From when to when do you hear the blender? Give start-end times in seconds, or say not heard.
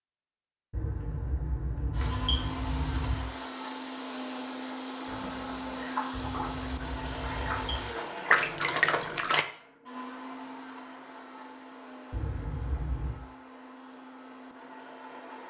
1.9-15.4.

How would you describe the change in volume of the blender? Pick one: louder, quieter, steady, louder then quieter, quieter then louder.
quieter.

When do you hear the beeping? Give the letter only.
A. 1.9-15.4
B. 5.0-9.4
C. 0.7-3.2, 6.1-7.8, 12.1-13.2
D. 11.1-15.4
C.